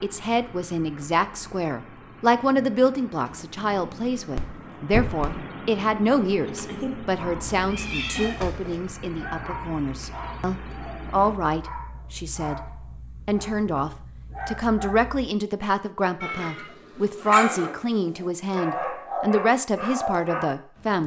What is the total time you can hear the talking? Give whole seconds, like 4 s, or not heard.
21 s.